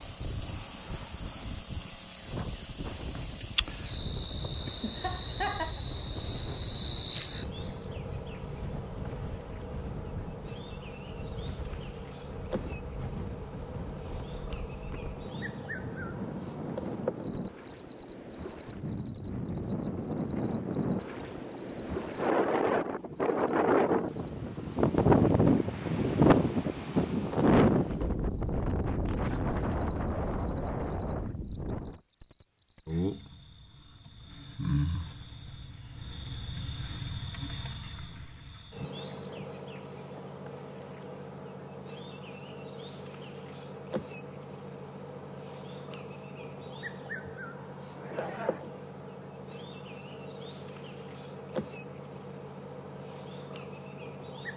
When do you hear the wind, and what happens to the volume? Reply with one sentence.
The wind can be heard from 0.0 to 32.0 s, getting louder.